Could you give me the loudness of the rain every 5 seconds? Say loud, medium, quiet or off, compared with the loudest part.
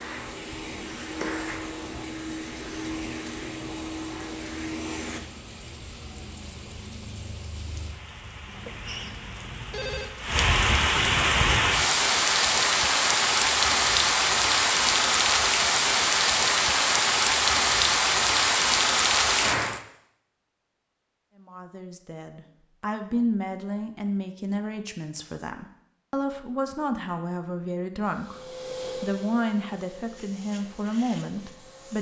quiet, quiet, loud, loud, off, off, off.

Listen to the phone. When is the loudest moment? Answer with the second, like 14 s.
10 s.